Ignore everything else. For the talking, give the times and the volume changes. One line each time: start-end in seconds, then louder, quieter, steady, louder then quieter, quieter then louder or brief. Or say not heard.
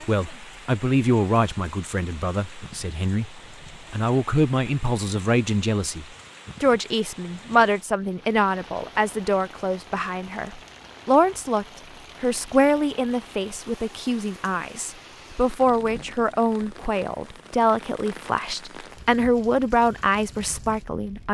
0.0-21.2 steady.